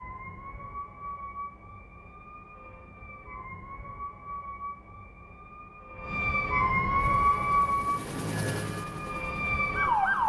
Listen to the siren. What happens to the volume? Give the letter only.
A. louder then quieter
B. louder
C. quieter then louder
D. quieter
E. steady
A.